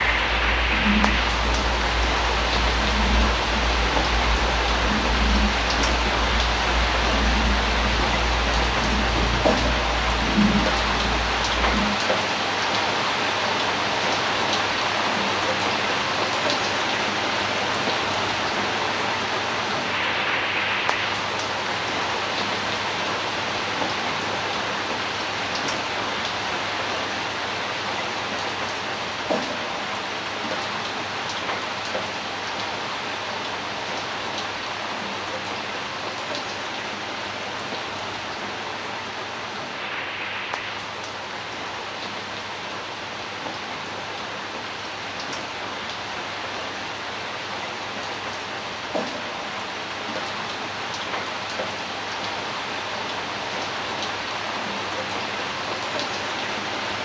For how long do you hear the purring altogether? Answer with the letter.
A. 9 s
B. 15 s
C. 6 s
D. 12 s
D.